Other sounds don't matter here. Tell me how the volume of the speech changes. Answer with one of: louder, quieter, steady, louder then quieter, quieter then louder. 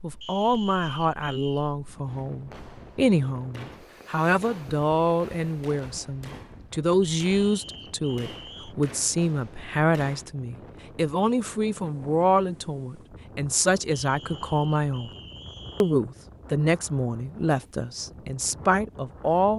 steady.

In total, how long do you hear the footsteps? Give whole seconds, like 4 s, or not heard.
not heard.